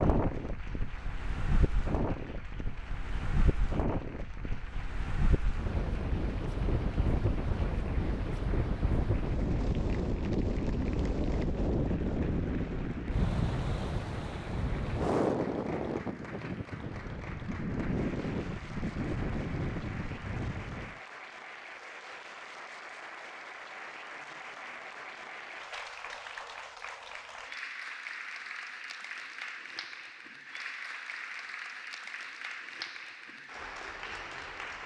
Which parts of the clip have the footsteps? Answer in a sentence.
You can't hear the footsteps here.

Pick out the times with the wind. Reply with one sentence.
The wind can be heard from 0.0 to 21.0 s.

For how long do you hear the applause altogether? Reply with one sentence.
You can hear the applause for 35 seconds altogether.